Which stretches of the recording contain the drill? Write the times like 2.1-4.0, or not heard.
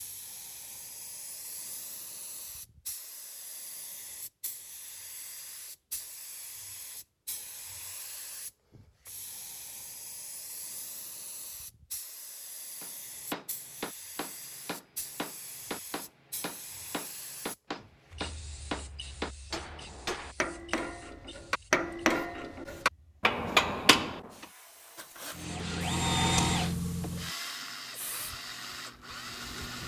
24.9-29.8.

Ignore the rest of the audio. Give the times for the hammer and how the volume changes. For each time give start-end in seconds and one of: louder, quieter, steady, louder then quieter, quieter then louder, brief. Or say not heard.
12.8-24.4 louder.